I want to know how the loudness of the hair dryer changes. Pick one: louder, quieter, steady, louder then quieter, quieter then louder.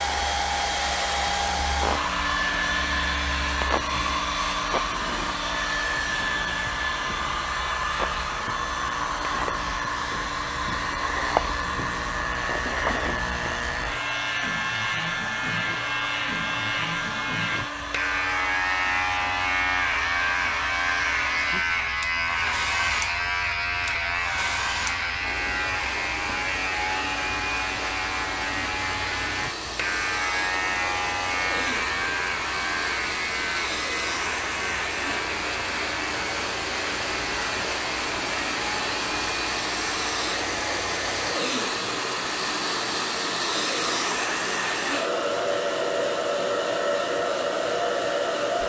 quieter then louder.